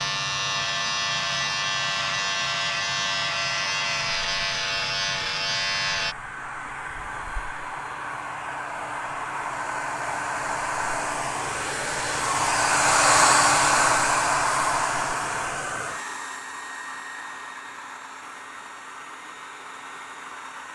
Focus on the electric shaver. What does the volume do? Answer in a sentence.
The volume of the electric shaver stays about the same.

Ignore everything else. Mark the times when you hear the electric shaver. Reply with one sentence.
You can hear the electric shaver from 0.0 to 6.2 s.